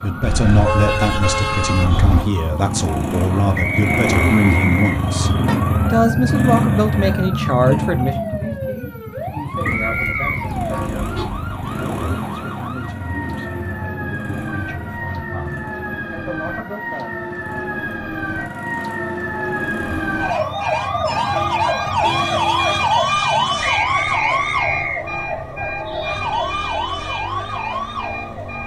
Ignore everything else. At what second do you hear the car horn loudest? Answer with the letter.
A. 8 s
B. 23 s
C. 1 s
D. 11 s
C.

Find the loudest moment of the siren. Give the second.
23 s.